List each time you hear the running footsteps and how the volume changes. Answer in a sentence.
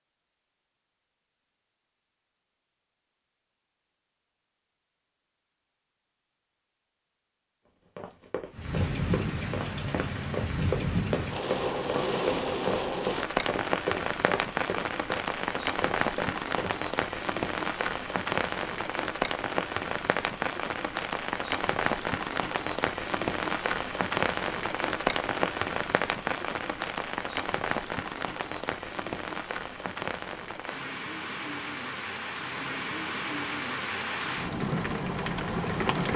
The running footsteps can be heard from 8.0 to 16.9 s, getting louder then quieter.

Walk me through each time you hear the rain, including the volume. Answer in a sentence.
The rain can be heard from 8.5 to 36.1 s, at a steady volume.